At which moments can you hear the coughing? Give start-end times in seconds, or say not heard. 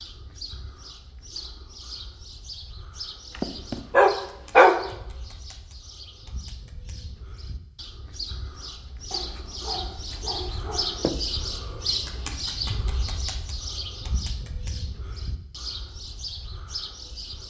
not heard.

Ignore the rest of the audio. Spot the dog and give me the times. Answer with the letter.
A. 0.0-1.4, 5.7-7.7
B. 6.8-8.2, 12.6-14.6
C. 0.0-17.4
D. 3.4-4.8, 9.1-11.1
D.